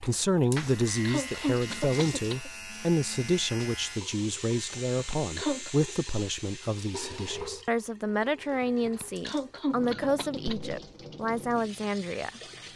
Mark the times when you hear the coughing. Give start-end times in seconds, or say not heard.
0.4-2.5, 4.7-5.8, 8.6-10.7.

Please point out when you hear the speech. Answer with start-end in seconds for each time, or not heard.
0.0-12.7.